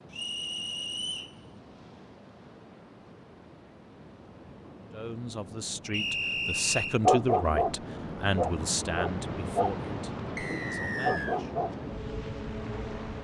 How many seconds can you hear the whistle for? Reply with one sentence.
You can hear the whistle for 3 seconds altogether.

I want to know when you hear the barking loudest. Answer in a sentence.
The loudest moment of the barking is at 7 seconds.